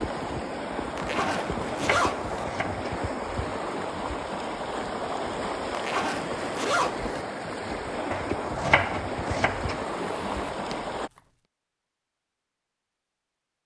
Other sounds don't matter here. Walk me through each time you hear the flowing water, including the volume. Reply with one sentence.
The flowing water can be heard from 0.0 to 11.1 s, at a steady volume.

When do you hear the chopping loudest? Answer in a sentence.
The volume of the chopping peaks at 9 seconds.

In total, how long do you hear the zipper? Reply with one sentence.
The zipper can be heard for 4 seconds in total.